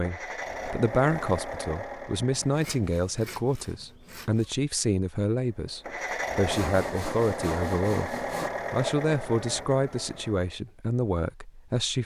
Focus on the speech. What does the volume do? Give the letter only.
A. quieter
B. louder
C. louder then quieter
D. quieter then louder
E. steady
E.